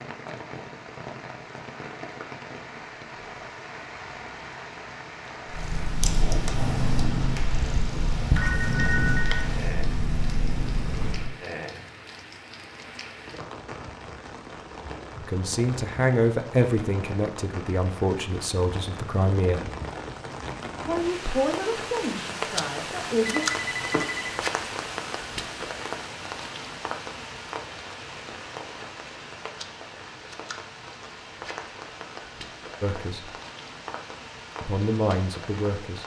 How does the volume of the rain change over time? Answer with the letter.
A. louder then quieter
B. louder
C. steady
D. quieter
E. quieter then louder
A.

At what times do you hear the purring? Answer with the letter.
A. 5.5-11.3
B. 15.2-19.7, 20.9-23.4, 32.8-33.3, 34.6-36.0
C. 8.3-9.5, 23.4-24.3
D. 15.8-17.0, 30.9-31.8
A.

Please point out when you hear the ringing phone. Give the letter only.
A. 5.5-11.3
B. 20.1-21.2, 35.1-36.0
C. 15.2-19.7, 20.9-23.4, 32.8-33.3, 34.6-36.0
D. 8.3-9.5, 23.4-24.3
D.